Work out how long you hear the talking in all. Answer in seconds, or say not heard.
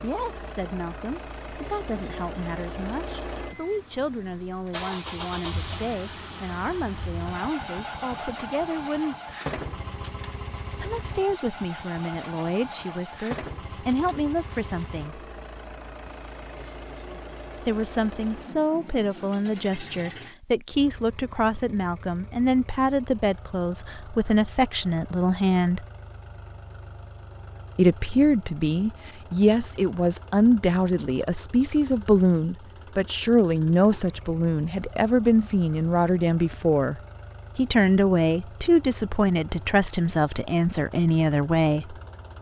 35 s.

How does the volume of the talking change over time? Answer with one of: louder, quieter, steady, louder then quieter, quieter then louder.
louder.